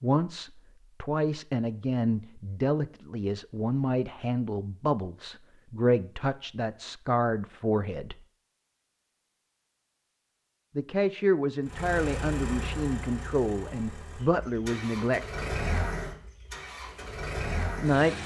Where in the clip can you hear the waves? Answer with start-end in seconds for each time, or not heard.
not heard.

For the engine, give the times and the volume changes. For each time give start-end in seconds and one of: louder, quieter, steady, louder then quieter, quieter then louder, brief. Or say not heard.
11.6-18.2 quieter then louder.